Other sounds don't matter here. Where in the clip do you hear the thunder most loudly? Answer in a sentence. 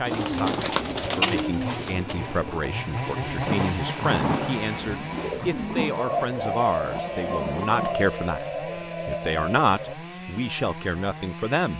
The loudest moment of the thunder is at 4 seconds.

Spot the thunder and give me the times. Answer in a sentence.
The thunder can be heard from 3.4 to 8.0 s.